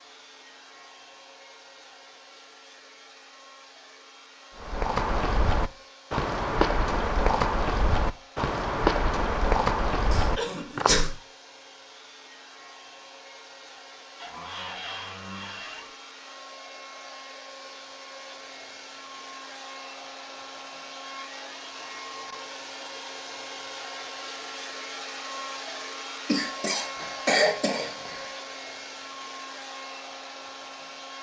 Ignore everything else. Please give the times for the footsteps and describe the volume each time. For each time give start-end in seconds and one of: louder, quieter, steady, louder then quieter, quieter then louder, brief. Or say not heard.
4.5-10.9 steady.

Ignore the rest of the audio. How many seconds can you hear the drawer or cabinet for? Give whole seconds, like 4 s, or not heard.
2 s.